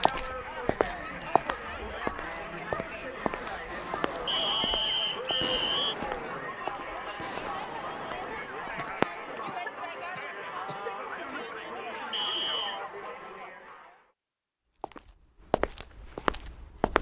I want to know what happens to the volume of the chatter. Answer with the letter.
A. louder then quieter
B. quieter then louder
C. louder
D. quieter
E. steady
E.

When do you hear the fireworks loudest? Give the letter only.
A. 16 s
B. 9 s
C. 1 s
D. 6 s
B.